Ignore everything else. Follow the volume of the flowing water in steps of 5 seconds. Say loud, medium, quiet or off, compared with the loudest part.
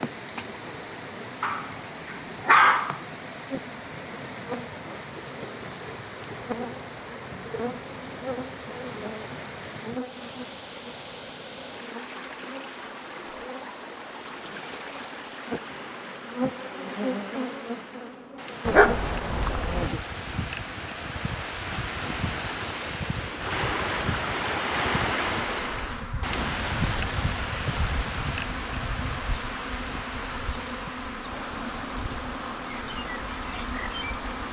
medium, medium, medium, medium, loud, loud, medium.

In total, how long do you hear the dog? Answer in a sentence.
The dog can be heard for 3 seconds in total.